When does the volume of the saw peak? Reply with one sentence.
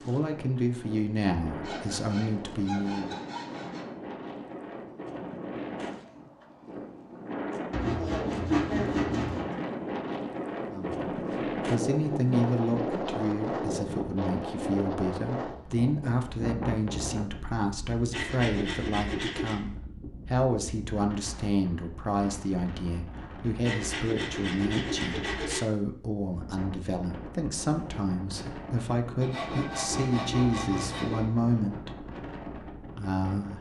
The volume of the saw peaks at 9 seconds.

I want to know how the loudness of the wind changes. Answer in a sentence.
The loudness of the wind goes up, then down.